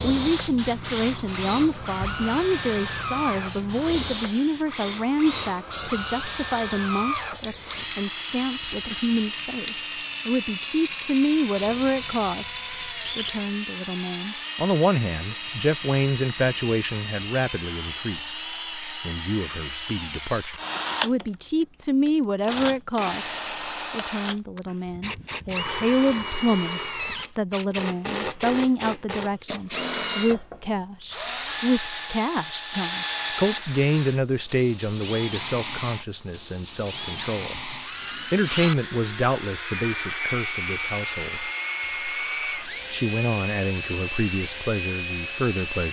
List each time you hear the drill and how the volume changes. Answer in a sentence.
The drill can be heard from 0.0 to 45.8 s, at a steady volume.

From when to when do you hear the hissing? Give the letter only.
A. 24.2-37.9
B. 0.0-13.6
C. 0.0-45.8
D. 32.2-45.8
B.